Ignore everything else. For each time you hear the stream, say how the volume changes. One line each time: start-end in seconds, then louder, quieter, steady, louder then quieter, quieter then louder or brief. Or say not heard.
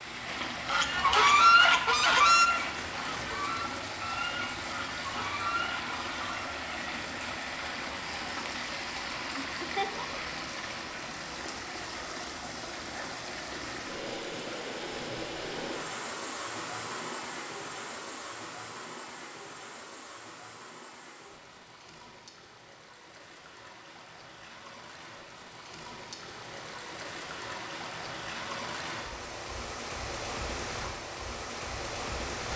0.0-32.5 quieter then louder.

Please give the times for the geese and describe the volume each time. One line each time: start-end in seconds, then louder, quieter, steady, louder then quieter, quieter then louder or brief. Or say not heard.
0.7-6.5 quieter.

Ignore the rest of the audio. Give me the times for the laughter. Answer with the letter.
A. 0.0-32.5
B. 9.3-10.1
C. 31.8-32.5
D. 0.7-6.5
B.